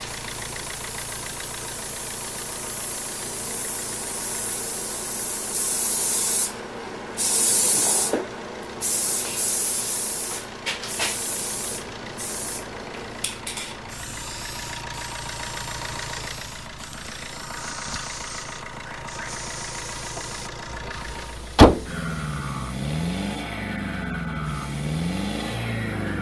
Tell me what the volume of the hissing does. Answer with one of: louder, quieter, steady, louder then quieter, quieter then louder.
louder then quieter.